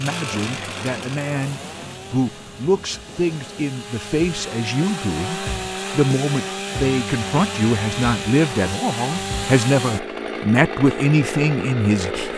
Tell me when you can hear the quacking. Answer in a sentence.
The quacking can't be heard in this clip.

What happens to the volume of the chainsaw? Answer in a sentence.
The loudness of the chainsaw goes up.